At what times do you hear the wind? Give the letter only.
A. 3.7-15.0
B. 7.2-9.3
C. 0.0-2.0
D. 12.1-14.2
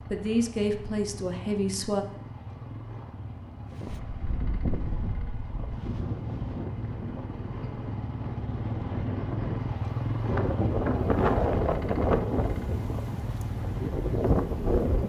A.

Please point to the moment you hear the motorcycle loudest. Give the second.
10 s.